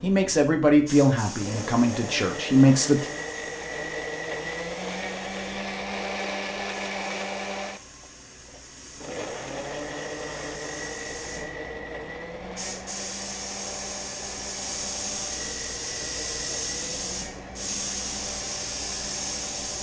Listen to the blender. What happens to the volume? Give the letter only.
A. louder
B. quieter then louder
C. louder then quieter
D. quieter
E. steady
D.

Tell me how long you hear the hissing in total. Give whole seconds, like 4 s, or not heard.
20 s.